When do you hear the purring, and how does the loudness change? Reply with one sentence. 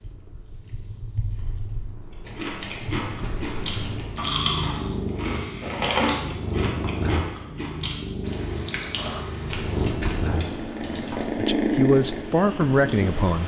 You can hear the purring from 0.0 to 13.4 s, getting louder.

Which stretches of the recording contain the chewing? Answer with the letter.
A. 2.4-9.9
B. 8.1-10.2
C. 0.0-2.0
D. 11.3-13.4
A.